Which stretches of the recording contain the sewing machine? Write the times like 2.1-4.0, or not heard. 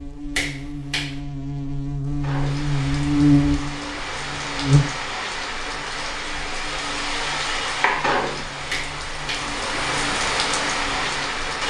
not heard.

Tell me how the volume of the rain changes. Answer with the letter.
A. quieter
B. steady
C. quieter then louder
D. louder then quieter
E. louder
E.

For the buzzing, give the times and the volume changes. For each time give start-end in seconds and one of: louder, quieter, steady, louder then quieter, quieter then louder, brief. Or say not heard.
0.0-11.4 louder then quieter.